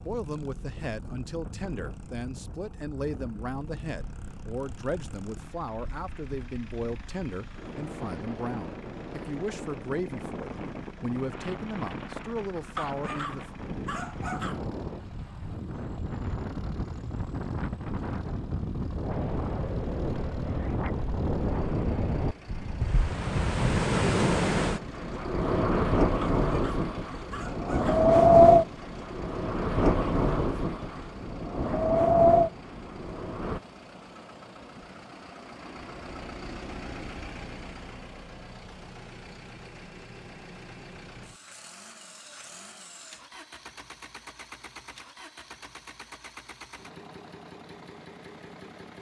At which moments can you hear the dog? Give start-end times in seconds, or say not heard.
12.8-14.7, 26.2-28.1.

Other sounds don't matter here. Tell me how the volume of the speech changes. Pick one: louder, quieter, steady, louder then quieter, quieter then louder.
steady.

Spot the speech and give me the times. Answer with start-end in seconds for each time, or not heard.
0.0-13.4.